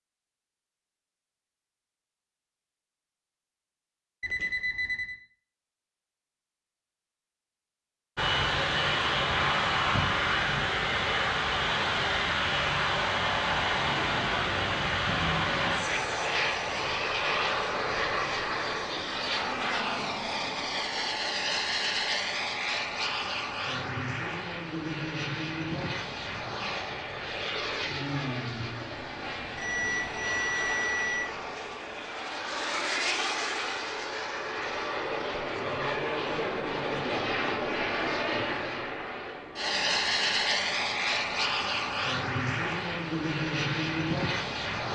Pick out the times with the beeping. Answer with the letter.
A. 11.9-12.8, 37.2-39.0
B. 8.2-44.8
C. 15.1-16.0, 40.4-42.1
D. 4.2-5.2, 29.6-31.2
D.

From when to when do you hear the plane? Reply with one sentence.
You can hear the plane from 8.2 to 44.8 s.